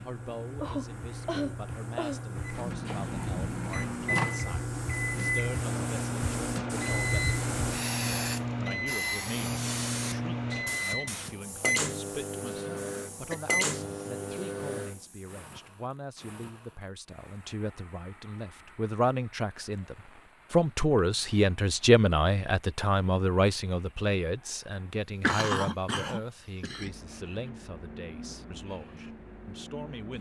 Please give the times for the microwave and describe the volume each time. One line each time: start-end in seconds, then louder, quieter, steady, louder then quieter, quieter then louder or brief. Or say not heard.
2.5-15.0 steady.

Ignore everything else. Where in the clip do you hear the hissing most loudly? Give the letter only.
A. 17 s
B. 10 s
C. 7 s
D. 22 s
C.